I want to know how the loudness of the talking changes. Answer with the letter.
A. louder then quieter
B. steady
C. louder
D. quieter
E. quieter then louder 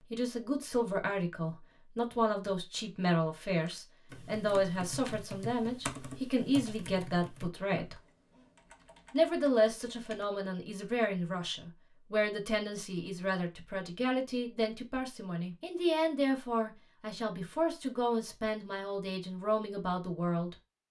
B.